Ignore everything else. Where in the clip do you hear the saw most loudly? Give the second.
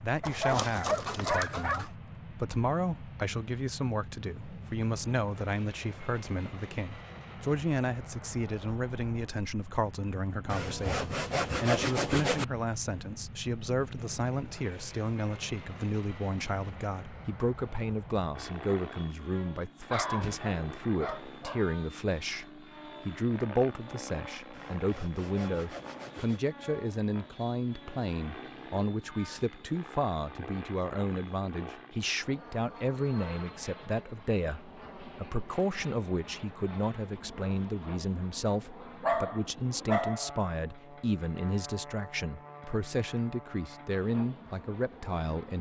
12 s.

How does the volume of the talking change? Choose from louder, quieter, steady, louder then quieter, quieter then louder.
steady.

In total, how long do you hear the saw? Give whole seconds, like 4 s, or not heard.
4 s.